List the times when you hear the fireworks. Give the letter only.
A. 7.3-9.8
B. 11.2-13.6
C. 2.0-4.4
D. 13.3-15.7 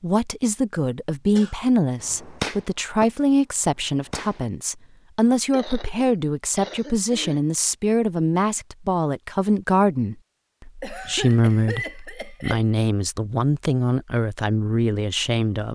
C.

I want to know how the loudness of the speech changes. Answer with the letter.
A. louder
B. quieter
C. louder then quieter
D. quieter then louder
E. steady
E.